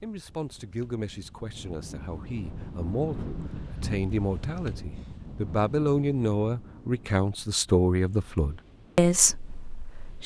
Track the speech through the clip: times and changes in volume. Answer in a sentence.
You can hear the speech from 0.0 to 10.2 s, getting louder.